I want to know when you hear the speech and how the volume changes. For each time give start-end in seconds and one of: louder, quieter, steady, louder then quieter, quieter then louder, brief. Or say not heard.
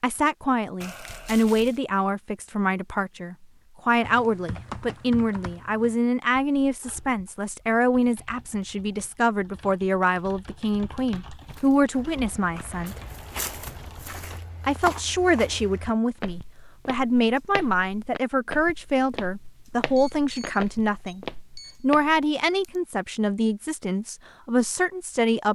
0.0-13.0 steady
14.7-25.4 steady.